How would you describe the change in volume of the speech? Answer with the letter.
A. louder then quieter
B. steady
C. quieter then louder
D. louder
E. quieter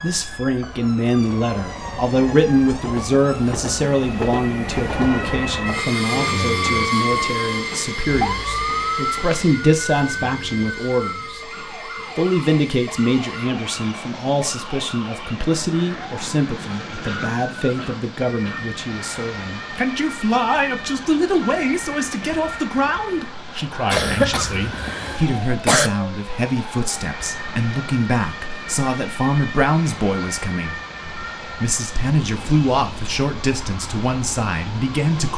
B.